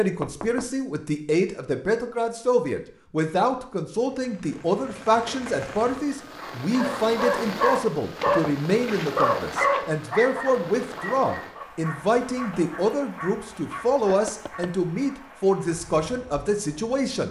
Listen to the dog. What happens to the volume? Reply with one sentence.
The volume of the dog goes down.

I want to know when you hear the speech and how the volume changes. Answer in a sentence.
You can hear the speech from 0.0 to 17.2 s, at a steady volume.